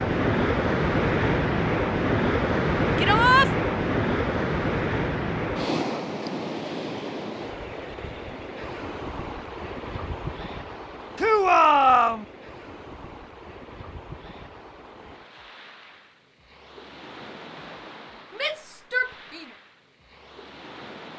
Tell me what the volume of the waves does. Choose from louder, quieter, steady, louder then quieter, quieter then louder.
quieter.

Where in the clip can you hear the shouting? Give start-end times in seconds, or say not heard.
3.0-3.5, 11.2-12.2, 18.3-19.5.